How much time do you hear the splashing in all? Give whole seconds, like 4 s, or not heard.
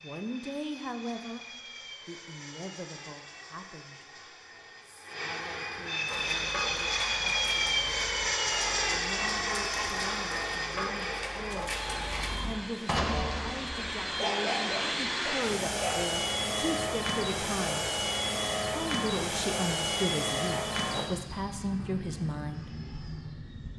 not heard.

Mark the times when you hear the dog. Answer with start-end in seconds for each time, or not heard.
6.0-16.0.